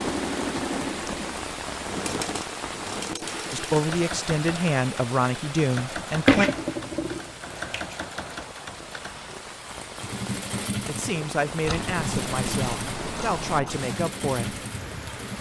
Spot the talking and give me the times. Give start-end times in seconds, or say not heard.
3.5-6.5, 10.8-14.6.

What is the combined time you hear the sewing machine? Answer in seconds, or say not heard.
15 s.